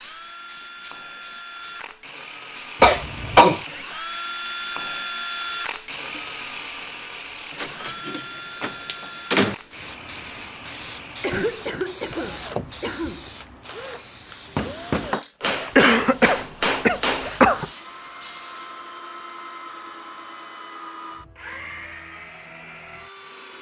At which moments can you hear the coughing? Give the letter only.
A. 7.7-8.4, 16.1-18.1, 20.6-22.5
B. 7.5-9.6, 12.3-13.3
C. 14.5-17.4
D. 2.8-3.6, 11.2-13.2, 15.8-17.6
D.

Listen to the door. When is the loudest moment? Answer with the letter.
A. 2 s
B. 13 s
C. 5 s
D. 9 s
D.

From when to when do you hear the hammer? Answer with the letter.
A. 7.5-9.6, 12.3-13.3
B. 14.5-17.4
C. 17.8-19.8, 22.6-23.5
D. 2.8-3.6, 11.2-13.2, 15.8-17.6
B.